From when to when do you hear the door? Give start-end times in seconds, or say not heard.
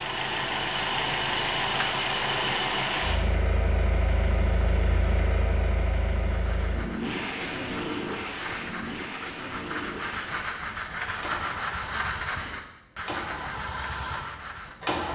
not heard.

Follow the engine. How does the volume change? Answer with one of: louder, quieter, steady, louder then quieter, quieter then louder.
quieter.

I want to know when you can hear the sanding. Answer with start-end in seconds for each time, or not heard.
6.2-14.8.